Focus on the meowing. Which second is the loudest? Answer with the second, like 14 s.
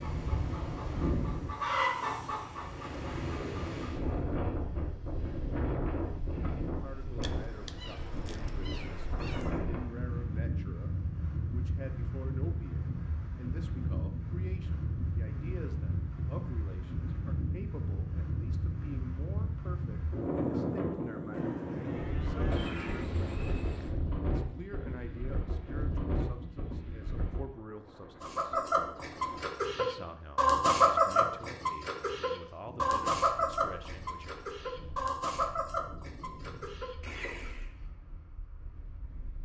23 s.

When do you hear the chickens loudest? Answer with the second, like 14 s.
31 s.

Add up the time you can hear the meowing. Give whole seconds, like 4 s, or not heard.
4 s.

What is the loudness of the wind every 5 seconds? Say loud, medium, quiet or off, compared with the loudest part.
loud, loud, loud, loud, loud, medium, quiet, quiet.